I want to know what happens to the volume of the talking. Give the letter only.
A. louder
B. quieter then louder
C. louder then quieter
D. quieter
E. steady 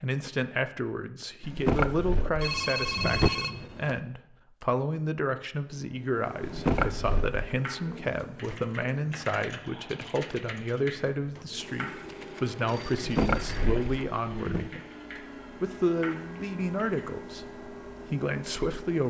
E.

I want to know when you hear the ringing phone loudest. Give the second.
3 s.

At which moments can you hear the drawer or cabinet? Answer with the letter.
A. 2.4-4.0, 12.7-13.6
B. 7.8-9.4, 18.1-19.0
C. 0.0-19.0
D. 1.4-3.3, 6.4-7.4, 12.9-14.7
D.